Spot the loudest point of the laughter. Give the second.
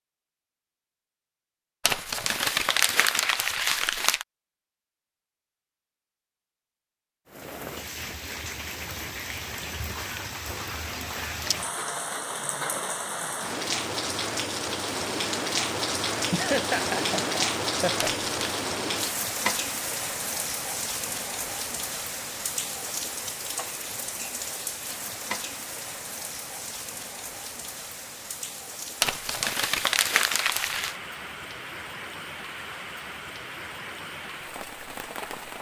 17 s.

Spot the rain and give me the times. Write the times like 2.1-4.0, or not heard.
7.2-35.5.